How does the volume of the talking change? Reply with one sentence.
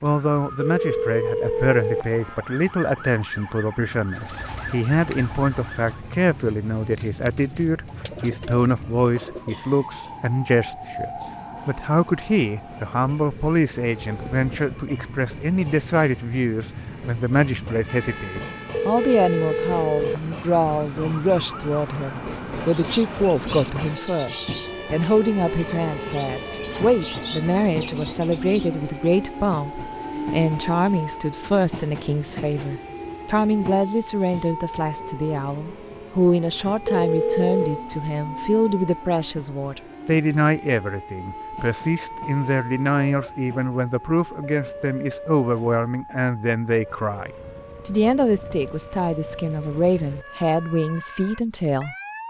The loudness of the talking stays about the same.